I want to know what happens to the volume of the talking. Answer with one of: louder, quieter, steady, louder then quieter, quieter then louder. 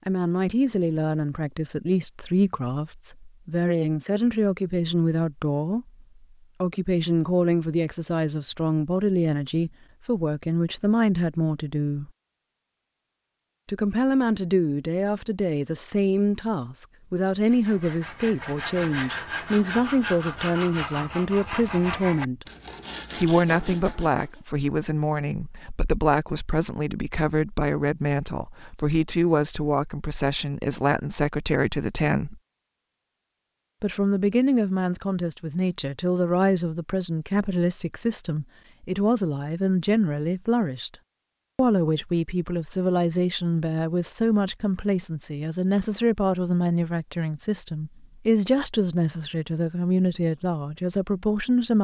steady.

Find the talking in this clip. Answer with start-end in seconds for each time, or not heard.
0.1-12.1, 13.7-22.4, 23.1-32.4, 33.8-40.9, 41.5-51.7.